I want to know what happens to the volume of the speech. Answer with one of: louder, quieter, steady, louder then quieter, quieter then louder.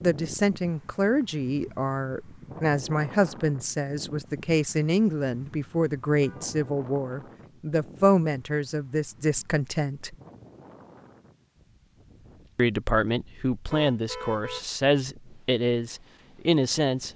steady.